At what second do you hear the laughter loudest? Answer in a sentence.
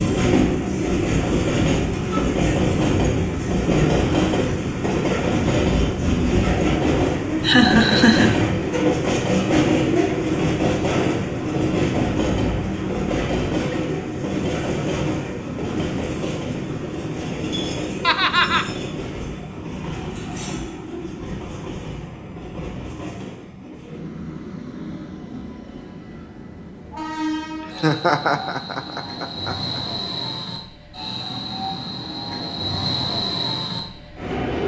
The loudest moment of the laughter is at 8 seconds.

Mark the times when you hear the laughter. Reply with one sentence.
The laughter can be heard from 7.4 to 8.3 s, from 18.0 to 18.6 s and from 27.6 to 29.8 s.